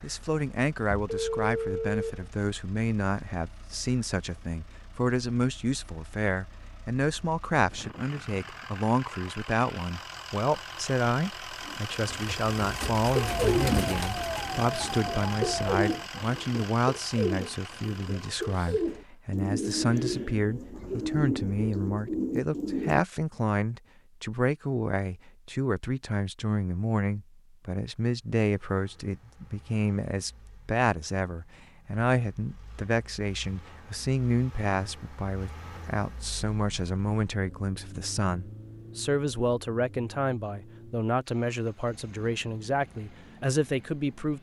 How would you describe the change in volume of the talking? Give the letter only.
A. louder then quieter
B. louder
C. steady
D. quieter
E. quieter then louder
C.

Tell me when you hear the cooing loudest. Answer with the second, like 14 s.
14 s.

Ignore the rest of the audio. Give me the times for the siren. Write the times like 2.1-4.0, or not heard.
13.2-15.9.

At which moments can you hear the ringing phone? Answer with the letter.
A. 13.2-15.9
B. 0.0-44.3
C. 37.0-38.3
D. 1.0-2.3
D.